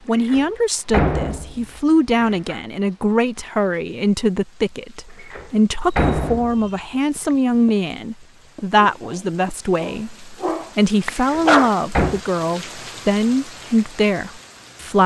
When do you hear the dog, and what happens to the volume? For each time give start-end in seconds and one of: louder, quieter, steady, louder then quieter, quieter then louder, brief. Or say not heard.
5.8-11.8 louder.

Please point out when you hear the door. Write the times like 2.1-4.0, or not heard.
0.1-2.6, 5.2-6.7, 11.2-12.2.